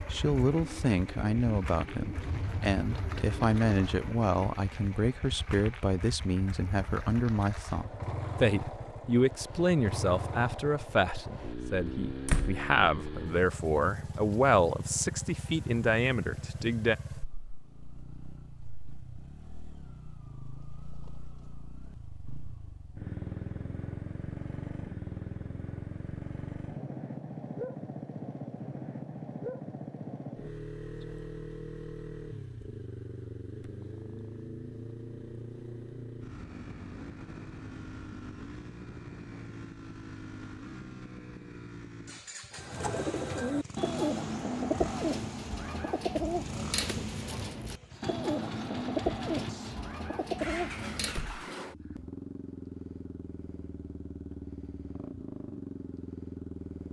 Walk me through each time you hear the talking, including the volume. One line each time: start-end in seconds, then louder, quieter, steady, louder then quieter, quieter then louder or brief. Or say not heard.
0.1-16.9 steady.